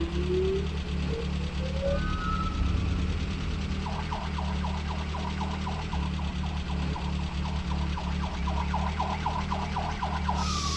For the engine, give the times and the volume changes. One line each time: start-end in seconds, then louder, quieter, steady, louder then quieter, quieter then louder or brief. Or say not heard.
0.0-10.7 steady.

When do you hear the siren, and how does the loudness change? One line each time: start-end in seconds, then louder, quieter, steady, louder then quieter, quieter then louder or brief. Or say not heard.
0.0-10.7 quieter then louder.